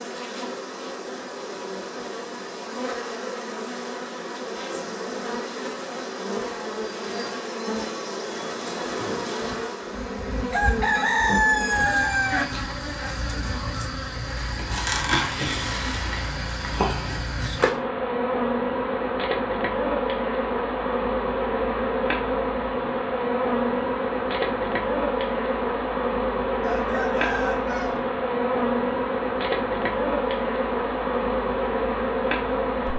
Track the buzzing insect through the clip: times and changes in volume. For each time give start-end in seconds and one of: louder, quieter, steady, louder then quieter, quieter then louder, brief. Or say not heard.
0.0-32.9 louder.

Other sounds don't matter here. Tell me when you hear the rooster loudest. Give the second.
11 s.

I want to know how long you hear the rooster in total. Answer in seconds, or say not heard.
4 s.